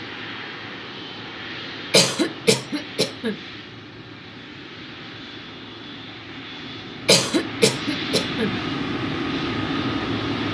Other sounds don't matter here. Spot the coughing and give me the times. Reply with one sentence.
The coughing can be heard from 1.9 to 3.4 s and from 7.0 to 8.6 s.